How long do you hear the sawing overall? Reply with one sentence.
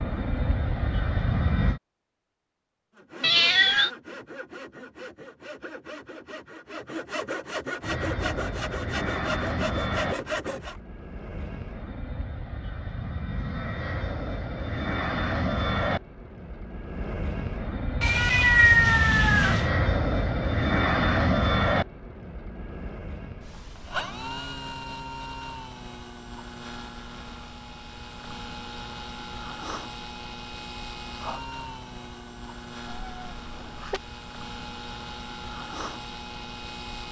The sawing can be heard for 8 seconds in total.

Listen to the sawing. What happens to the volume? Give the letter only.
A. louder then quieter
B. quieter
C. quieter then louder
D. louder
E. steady
D.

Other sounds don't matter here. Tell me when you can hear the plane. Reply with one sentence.
The plane can be heard from 0.0 to 1.8 s and from 7.8 to 37.0 s.